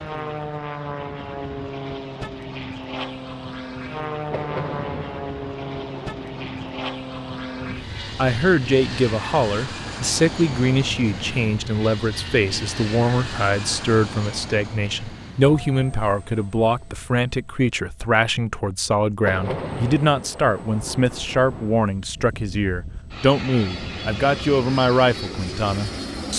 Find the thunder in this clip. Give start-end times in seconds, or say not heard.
4.3-6.8, 19.2-21.8.